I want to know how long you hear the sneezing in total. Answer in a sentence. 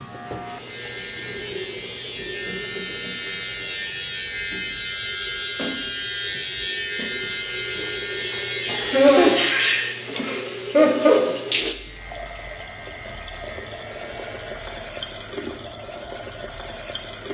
You can hear the sneezing for 2 seconds altogether.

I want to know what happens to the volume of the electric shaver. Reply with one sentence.
The loudness of the electric shaver goes up, then down.